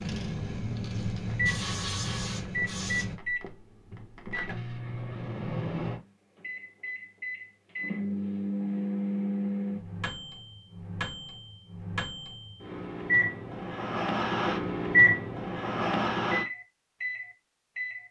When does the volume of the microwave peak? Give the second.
15 s.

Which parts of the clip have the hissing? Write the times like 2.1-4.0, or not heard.
0.0-3.1.